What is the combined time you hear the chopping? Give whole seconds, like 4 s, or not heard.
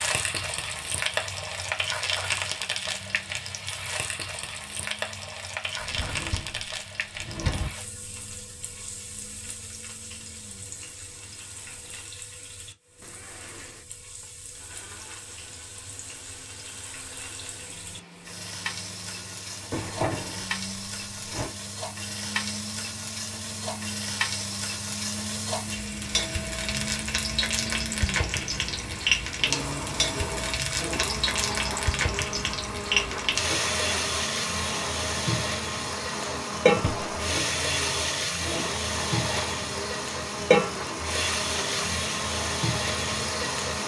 not heard.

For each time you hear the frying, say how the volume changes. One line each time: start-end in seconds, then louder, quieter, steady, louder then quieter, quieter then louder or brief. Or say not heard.
0.0-43.8 quieter then louder.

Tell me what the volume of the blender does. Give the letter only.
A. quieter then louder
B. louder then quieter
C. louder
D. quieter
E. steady
C.